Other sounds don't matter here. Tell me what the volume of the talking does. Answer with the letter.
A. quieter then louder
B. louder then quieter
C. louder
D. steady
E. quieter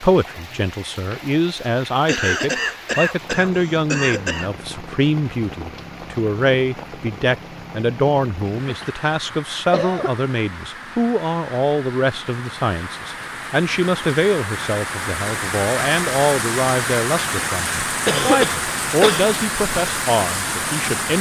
D.